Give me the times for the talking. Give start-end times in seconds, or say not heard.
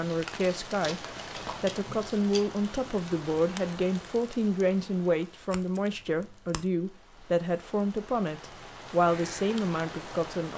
0.0-1.0, 1.6-10.5.